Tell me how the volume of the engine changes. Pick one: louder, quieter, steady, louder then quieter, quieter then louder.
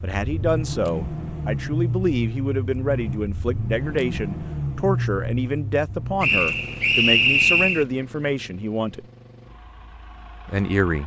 quieter.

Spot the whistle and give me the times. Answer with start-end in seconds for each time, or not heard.
6.2-7.8.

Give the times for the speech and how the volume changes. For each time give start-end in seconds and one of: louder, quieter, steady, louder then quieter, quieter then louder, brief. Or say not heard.
0.0-9.1 steady
10.4-11.0 brief.